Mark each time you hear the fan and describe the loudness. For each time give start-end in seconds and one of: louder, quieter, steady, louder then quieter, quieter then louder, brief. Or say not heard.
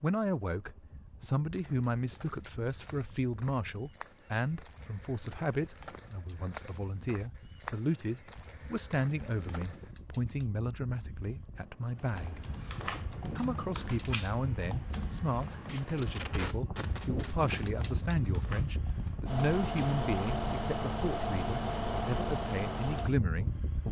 0.0-23.8 louder.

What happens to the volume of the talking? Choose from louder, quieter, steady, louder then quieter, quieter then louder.
steady.